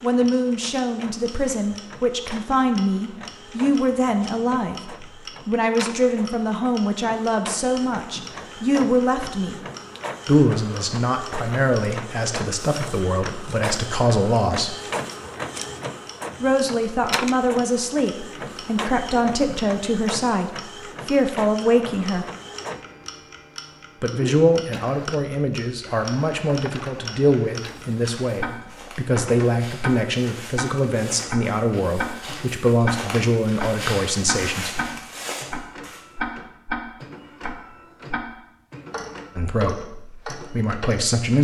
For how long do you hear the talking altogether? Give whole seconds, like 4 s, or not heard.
33 s.